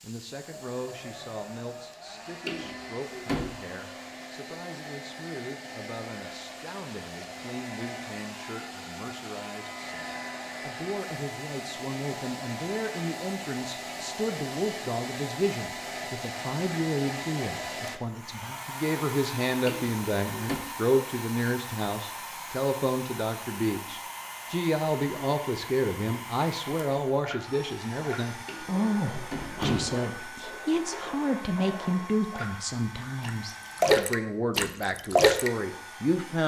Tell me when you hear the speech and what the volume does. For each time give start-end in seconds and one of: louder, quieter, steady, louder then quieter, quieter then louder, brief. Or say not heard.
0.0-36.4 louder.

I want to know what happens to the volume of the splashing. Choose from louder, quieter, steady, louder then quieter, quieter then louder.
louder.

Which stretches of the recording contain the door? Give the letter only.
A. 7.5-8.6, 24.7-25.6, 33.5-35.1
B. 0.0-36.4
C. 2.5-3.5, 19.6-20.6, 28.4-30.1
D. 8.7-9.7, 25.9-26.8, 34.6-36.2
C.